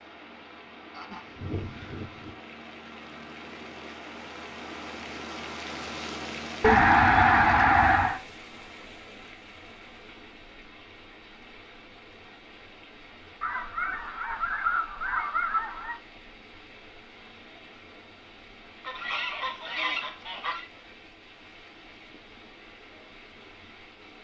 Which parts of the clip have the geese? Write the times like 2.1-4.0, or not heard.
0.9-2.4, 6.6-8.2, 13.4-16.0, 18.8-20.6.